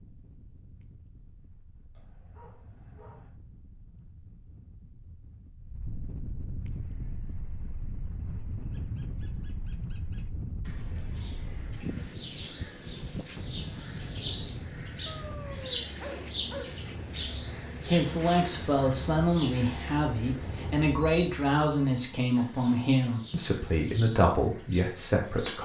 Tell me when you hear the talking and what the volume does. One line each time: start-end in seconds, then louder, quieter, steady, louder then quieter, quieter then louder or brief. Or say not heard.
17.8-25.5 steady.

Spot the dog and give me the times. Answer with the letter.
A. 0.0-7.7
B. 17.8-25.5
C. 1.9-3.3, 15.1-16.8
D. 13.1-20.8
C.